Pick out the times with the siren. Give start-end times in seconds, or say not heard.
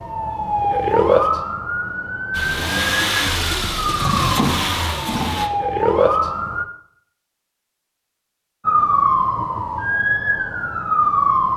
0.0-6.7, 8.7-11.5.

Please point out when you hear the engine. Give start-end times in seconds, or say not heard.
2.3-5.5.